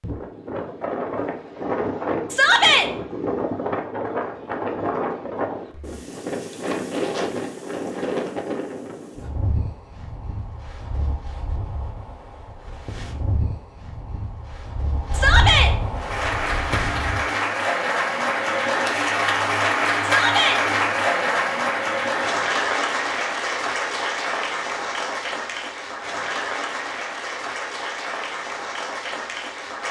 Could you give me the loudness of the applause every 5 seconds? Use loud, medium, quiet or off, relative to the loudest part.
off, off, off, loud, loud, medium.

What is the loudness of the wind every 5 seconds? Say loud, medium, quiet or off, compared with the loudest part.
loud, loud, medium, loud, off, off.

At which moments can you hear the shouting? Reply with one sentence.
You can hear the shouting from 2.3 to 2.9 s, from 15.1 to 15.7 s and from 20.0 to 20.6 s.